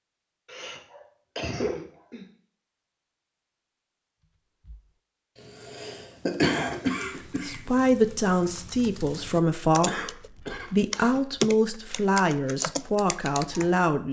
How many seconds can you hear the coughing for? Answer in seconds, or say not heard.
5 s.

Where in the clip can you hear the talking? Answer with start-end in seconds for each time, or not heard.
7.2-14.0.